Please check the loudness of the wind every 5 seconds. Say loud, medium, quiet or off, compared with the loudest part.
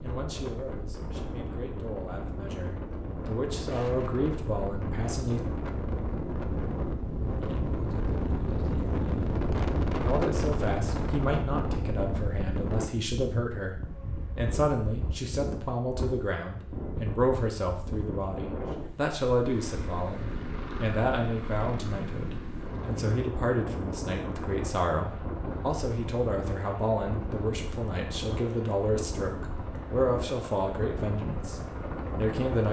medium, loud, loud, medium, medium, medium, medium.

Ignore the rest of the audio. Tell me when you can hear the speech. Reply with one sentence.
The speech can be heard from 0.0 to 5.4 s and from 10.0 to 32.6 s.